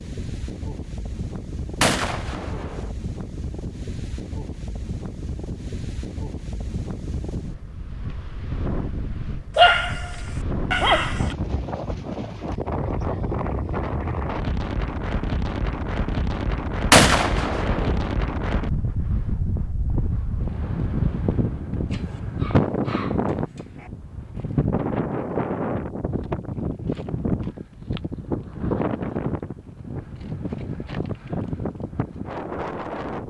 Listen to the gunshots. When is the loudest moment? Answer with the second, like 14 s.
17 s.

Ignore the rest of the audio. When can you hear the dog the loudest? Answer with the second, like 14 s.
10 s.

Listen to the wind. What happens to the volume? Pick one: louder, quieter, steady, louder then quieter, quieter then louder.
louder.